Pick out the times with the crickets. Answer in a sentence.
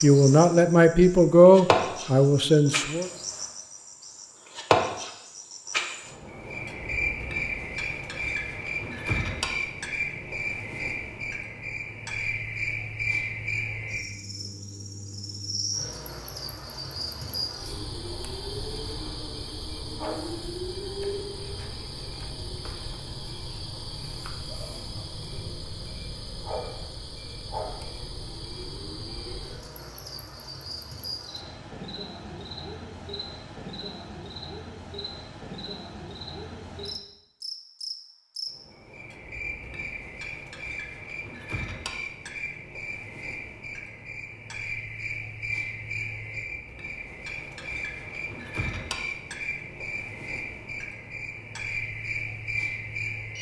You can hear the crickets from 0.0 to 53.3 s.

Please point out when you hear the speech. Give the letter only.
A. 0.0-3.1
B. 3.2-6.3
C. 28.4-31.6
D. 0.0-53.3
A.